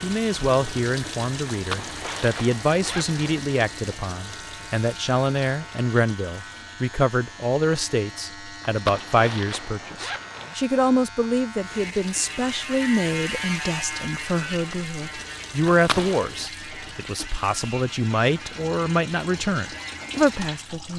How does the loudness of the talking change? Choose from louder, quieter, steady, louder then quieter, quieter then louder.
steady.